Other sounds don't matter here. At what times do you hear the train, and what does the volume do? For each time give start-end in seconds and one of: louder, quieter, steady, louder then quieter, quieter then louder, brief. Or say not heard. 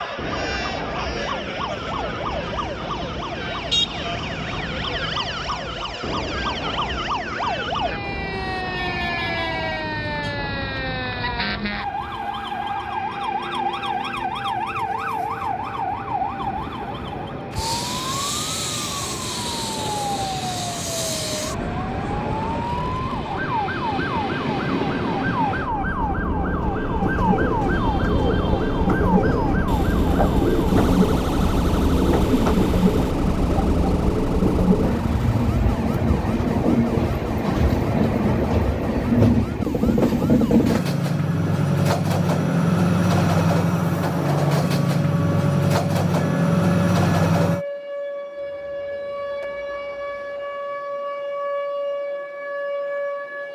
0.0-47.6 louder.